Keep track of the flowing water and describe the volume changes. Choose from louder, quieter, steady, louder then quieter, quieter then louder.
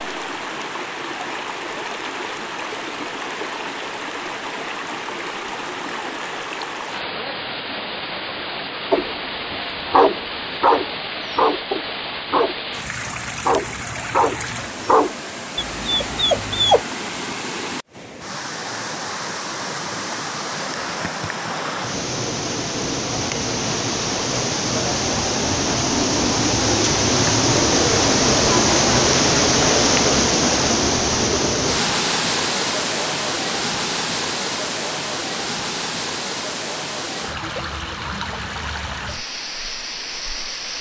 louder then quieter.